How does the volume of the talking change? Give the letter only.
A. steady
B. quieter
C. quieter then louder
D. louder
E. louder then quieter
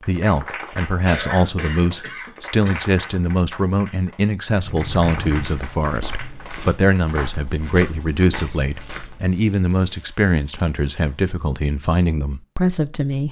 A.